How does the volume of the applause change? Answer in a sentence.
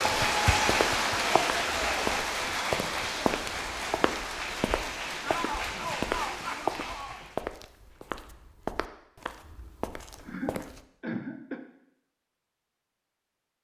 The loudness of the applause goes down.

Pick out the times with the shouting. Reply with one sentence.
You can hear the shouting from 5.2 to 7.2 s.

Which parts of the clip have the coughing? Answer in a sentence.
You can hear the coughing from 10.2 to 11.6 s.